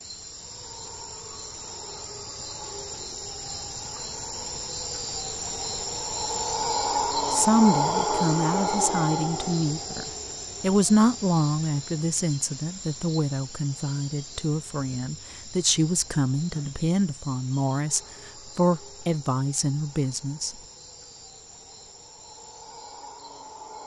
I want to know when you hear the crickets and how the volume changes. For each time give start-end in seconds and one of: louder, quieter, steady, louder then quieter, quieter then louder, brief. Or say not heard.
0.0-23.8 louder then quieter.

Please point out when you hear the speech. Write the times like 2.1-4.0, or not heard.
7.2-20.6.